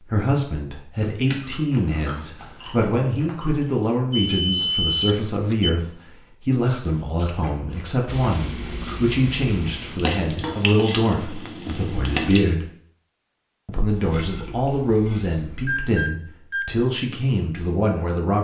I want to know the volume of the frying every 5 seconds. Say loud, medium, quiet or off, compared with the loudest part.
off, medium, loud, off.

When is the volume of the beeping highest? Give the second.
5 s.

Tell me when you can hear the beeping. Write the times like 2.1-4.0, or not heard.
4.1-5.7, 15.7-16.9.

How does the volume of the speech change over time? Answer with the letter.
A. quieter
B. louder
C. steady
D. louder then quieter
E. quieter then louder
C.